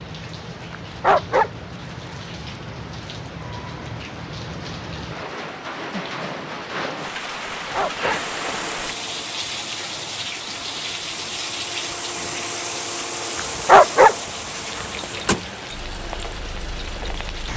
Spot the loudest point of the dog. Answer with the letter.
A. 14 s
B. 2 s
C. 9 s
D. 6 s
A.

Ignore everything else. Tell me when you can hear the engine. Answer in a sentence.
You can hear the engine from 8.1 to 17.5 s.